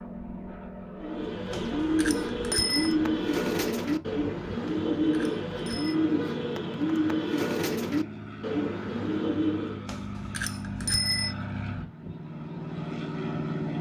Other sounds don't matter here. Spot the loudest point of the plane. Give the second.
13 s.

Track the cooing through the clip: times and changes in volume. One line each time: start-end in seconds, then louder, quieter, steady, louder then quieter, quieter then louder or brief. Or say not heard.
1.0-9.8 steady.